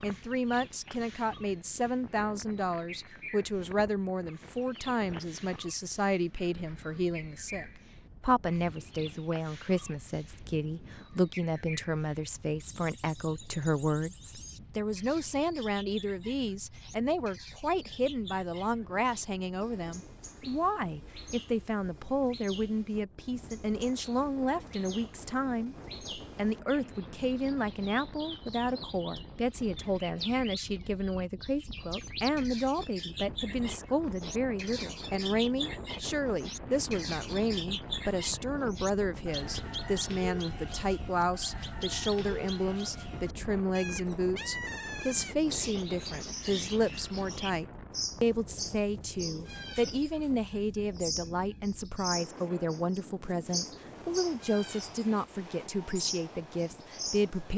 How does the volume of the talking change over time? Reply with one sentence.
The loudness of the talking stays about the same.